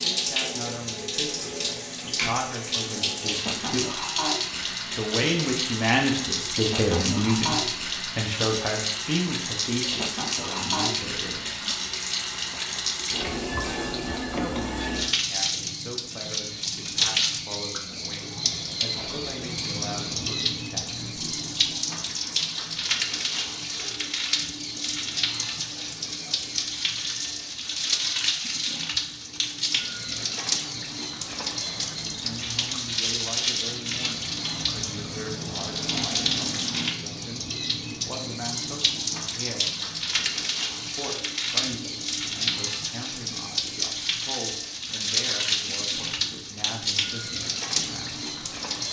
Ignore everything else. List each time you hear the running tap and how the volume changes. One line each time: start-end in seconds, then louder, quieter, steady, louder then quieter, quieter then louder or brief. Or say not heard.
0.0-48.8 steady.